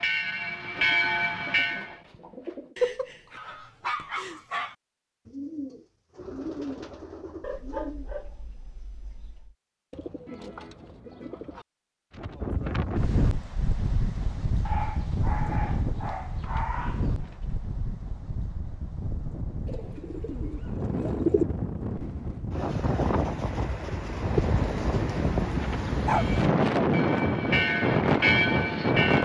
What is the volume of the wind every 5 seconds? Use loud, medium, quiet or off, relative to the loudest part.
off, off, medium, medium, medium, loud.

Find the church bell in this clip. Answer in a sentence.
You can hear the church bell from 0.0 to 2.0 s and from 26.1 to 29.2 s.